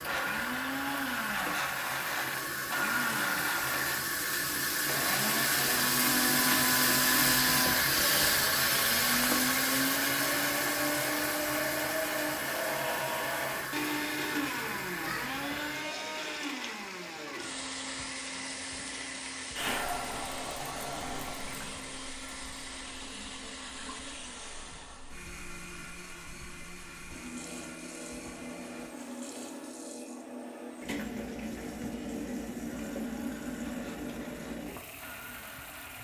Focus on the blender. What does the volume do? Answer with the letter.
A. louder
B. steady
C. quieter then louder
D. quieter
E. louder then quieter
D.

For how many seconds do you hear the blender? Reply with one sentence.
You can hear the blender for 36 seconds altogether.